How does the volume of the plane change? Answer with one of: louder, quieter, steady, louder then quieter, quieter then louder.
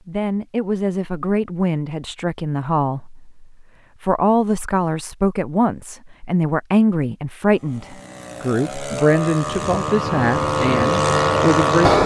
louder.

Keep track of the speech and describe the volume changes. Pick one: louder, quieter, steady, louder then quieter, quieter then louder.
steady.